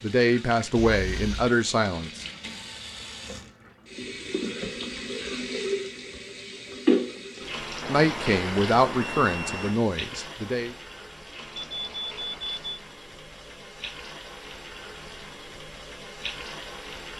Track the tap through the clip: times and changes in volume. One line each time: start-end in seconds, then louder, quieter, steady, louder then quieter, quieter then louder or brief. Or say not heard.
0.0-17.1 louder then quieter.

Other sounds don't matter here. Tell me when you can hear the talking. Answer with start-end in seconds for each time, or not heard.
0.0-2.2, 7.8-10.8.